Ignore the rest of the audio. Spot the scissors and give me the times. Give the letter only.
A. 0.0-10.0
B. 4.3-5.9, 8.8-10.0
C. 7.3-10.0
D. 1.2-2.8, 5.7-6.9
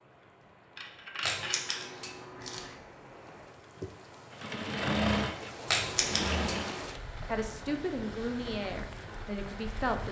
D.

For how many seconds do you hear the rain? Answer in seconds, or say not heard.
10 s.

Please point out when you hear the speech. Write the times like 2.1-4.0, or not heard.
7.3-10.0.